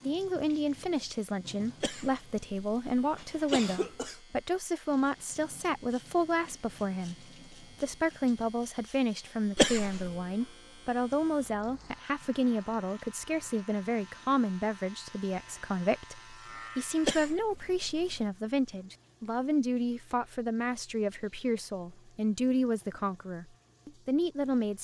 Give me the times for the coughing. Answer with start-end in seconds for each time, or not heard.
1.8-4.2, 9.6-10.1, 17.0-18.2.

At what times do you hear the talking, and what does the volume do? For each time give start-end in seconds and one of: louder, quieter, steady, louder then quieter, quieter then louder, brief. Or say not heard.
0.0-24.7 steady.